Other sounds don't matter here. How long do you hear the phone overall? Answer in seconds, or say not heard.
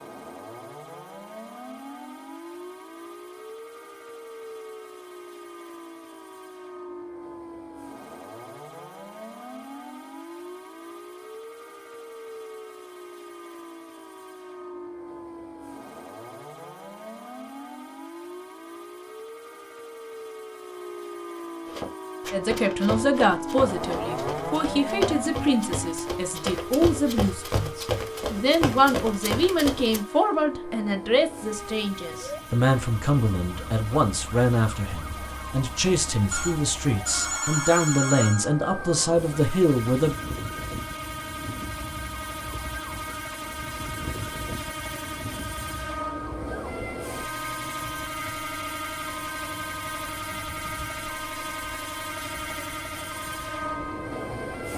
2 s.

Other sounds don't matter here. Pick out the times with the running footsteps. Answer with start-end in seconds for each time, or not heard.
21.6-30.0.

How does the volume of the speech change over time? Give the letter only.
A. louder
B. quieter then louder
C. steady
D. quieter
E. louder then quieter
C.